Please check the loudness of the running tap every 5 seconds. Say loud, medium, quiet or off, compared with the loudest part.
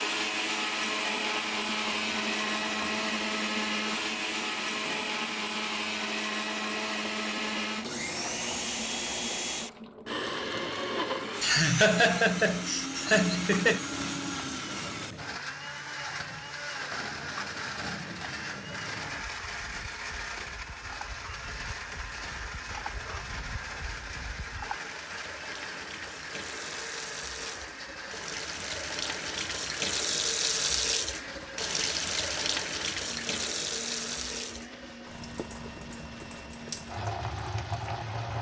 quiet, quiet, quiet, quiet, quiet, medium, loud, medium.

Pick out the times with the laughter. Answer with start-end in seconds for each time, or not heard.
11.4-13.8.